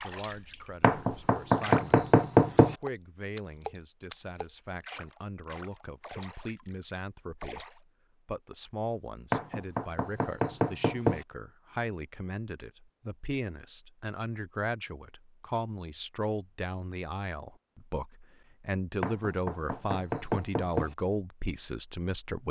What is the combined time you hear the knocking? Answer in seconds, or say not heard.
6 s.